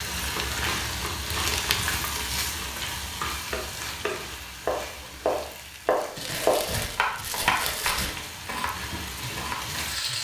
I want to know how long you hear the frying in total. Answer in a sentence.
You can hear the frying for 10 seconds altogether.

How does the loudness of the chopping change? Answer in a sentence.
The volume of the chopping goes up, then down.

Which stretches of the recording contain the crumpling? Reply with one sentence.
You can hear the crumpling from 0.5 to 2.2 s and from 6.2 to 8.2 s.